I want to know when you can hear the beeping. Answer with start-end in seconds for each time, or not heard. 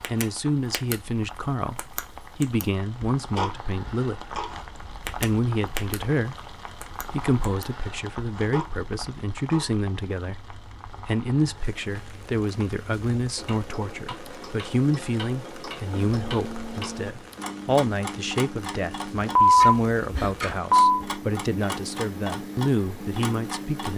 19.4-20.9.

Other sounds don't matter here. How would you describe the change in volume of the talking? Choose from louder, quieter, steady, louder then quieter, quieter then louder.
steady.